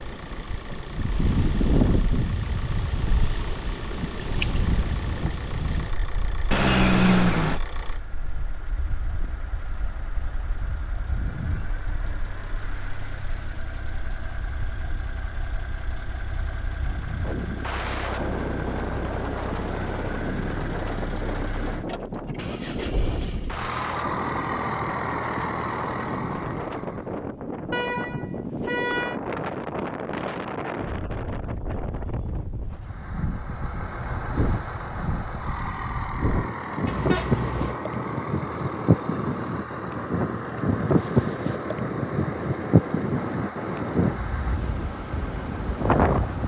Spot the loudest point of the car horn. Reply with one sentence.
The volume of the car horn peaks at 7 seconds.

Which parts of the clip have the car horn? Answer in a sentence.
The car horn can be heard from 6.5 to 7.6 s, from 27.7 to 29.1 s and from 36.9 to 37.8 s.